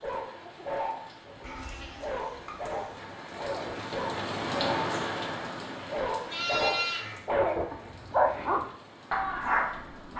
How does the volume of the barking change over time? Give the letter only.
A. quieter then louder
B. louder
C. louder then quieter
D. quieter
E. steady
B.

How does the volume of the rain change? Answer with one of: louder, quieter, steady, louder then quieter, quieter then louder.
louder then quieter.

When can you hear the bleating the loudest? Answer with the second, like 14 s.
7 s.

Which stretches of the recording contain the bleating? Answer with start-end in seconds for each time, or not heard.
1.4-2.9, 6.2-7.2.